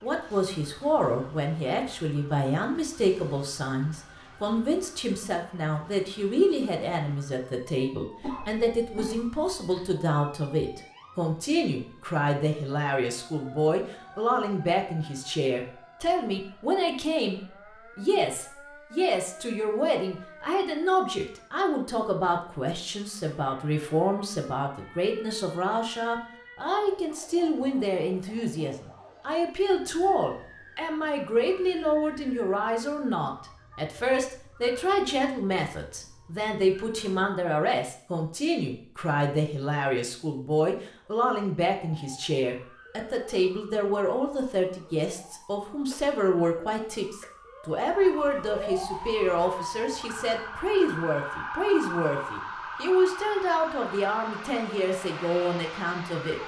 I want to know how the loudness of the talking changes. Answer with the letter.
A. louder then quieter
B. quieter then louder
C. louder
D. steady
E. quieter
D.